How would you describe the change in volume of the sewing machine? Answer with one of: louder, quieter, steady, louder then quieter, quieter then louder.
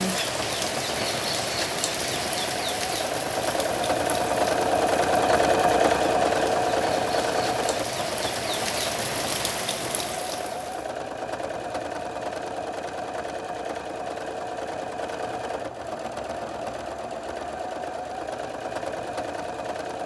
louder then quieter.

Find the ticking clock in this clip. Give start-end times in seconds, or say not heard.
not heard.